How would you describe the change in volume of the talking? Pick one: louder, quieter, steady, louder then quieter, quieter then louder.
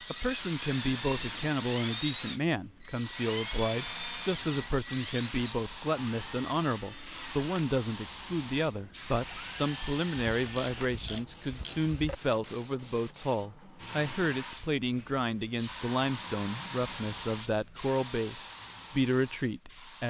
steady.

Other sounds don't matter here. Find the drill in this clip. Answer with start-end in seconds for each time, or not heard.
0.0-12.2.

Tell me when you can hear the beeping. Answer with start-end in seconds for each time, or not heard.
not heard.